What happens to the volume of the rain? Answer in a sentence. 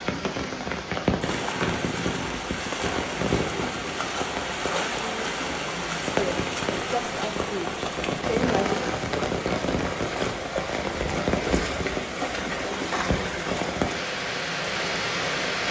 The volume of the rain stays about the same.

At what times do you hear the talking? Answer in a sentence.
You can hear the talking from 6.0 to 8.8 s.